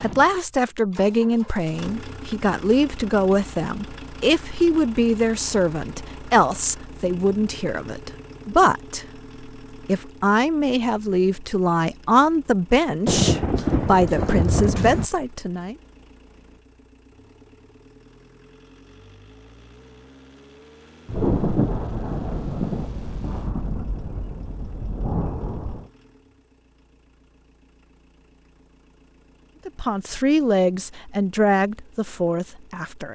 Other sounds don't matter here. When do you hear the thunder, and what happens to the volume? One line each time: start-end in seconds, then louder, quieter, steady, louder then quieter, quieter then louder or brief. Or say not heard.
13.1-15.1 brief
21.1-25.9 quieter then louder.